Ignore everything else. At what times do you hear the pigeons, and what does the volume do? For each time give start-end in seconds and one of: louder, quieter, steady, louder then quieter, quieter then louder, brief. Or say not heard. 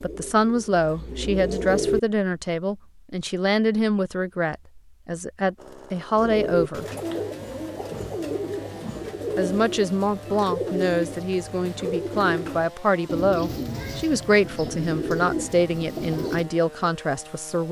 0.0-2.0 brief
6.2-16.5 steady.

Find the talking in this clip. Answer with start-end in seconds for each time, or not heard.
0.0-6.8, 9.3-17.6.